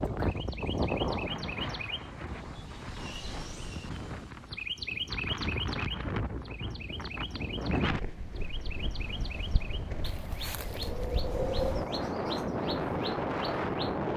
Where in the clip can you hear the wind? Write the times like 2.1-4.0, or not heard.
0.0-14.1.